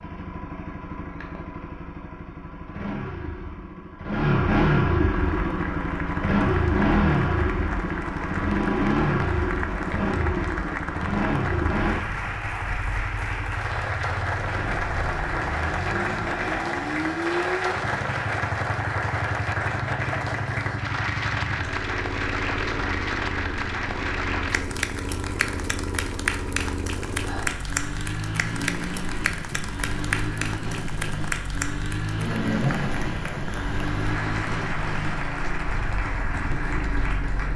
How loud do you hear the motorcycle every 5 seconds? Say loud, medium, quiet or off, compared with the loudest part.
loud, loud, medium, medium, medium, medium, medium, medium.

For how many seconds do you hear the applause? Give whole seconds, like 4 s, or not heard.
32 s.